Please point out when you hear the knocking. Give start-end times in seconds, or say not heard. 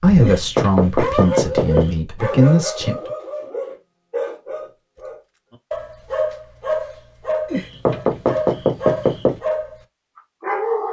0.2-1.9, 7.5-9.4.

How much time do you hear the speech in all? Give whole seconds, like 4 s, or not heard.
3 s.